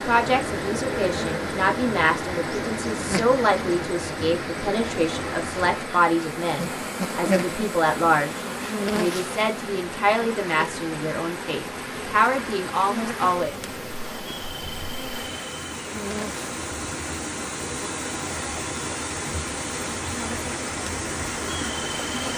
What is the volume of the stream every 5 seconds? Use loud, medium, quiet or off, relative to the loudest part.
loud, medium, medium, loud, loud.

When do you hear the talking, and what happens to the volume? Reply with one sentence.
You can hear the talking from 0.1 to 13.6 s, at a steady volume.